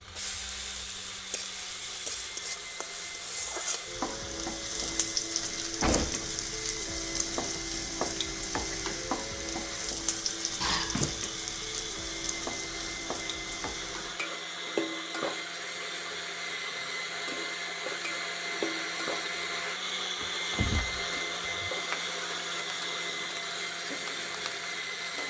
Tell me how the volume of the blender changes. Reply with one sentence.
The volume of the blender goes up.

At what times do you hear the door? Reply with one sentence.
The door can be heard from 5.8 to 6.4 s, from 10.6 to 11.3 s and from 20.2 to 21.7 s.